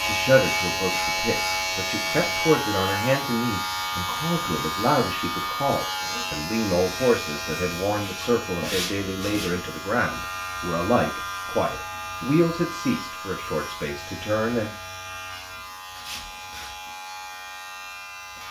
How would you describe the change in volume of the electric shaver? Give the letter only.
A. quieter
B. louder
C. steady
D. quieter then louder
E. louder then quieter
A.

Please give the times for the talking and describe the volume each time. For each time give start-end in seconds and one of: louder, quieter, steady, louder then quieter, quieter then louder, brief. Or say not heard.
0.0-14.7 steady.